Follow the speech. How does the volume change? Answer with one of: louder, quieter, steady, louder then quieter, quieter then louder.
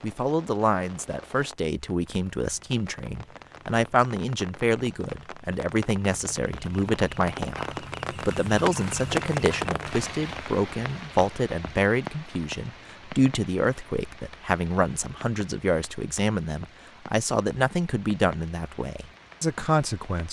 steady.